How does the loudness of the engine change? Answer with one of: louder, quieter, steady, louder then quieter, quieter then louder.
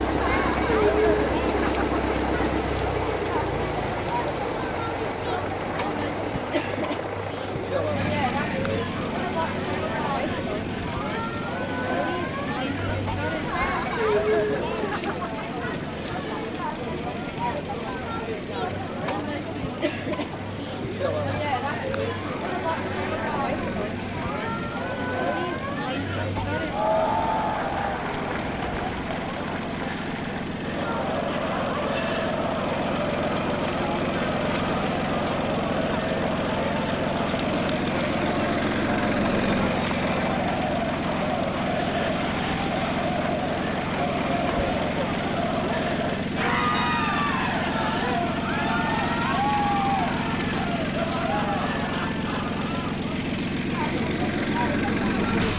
quieter then louder.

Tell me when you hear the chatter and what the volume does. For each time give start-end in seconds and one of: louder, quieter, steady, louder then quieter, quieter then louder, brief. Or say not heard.
0.0-55.5 steady.